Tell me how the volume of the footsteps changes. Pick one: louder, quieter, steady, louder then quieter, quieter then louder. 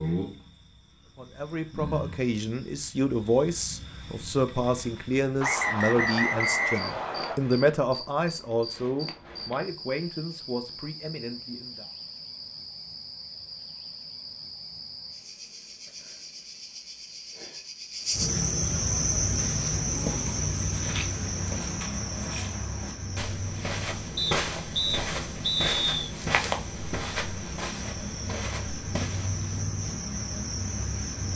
louder then quieter.